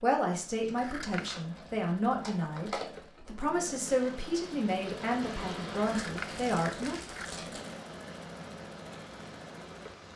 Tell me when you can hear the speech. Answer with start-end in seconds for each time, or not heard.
0.0-7.0.